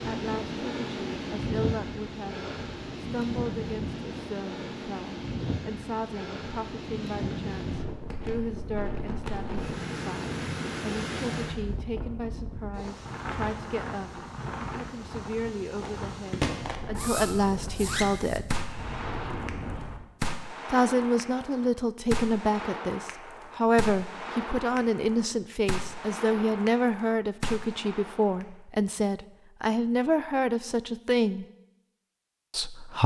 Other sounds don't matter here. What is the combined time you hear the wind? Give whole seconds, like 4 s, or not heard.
20 s.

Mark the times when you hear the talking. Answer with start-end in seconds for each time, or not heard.
0.1-18.6, 20.7-31.4, 32.5-33.0.